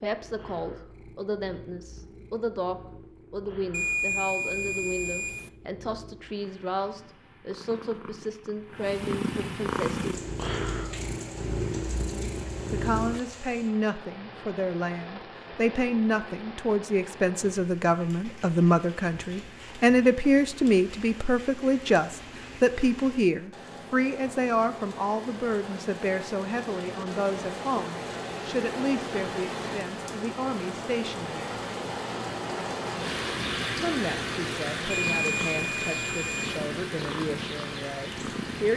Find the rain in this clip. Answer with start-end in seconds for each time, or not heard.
9.9-38.7.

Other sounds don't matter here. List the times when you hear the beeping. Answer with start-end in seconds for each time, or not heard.
3.7-5.5, 34.9-36.6.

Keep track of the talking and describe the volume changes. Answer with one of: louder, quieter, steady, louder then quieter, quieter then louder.
louder then quieter.